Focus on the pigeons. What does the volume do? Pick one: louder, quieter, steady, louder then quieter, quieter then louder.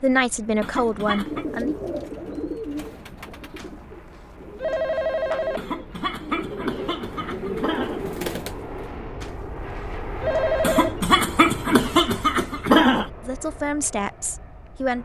quieter then louder.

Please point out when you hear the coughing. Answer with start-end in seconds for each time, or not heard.
0.6-1.4, 5.5-8.1, 10.6-13.1.